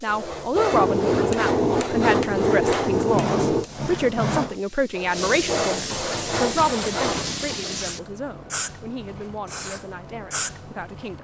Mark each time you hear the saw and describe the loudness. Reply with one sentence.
You can hear the saw from 0.1 to 7.3 s, at a steady volume.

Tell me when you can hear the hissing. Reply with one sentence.
The hissing can be heard from 0.0 to 11.1 s.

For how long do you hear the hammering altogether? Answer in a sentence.
You can hear the hammering for 5 seconds altogether.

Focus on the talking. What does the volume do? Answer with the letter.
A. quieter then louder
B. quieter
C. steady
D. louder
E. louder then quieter
B.